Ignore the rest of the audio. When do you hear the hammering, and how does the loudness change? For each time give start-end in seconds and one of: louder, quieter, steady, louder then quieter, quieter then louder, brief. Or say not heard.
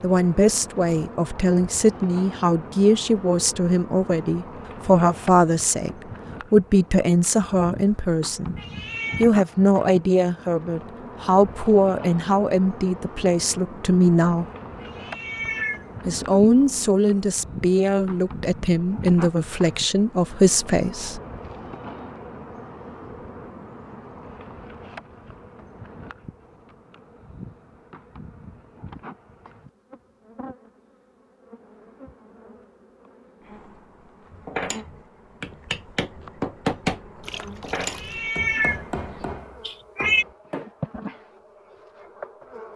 34.3-40.7 louder then quieter.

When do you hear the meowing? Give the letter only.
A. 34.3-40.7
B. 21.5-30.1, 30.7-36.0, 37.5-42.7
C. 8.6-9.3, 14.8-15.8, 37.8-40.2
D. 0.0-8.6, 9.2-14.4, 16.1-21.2
C.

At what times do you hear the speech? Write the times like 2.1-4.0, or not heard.
0.0-8.6, 9.2-14.4, 16.1-21.2.